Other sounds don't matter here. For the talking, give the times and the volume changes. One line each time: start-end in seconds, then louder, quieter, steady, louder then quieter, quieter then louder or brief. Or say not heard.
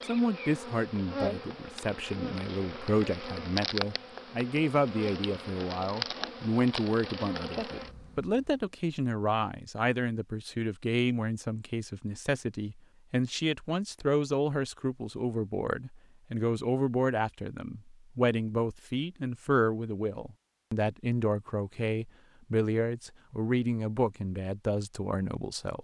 0.1-25.7 steady.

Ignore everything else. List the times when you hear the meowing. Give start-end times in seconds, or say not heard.
not heard.